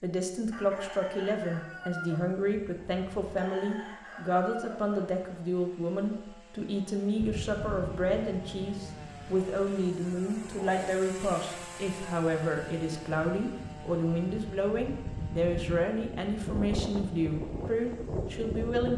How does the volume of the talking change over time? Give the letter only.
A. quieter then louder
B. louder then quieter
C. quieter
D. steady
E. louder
D.